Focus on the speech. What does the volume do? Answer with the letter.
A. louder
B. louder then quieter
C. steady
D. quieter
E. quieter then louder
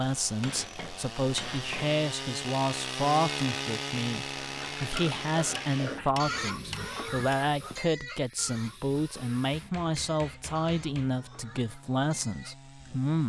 C.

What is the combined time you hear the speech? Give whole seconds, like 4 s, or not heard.
13 s.